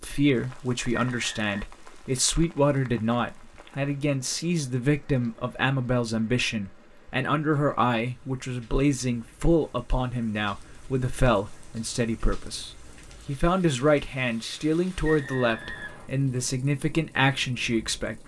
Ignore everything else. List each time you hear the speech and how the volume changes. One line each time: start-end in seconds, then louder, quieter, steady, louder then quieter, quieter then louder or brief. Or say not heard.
0.0-18.2 steady.